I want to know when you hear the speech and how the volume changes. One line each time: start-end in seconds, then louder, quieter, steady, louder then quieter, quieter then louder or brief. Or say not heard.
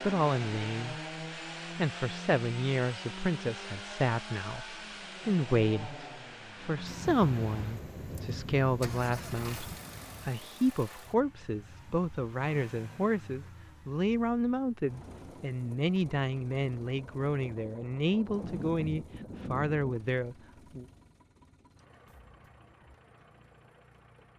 0.0-0.9 brief
1.8-20.9 steady.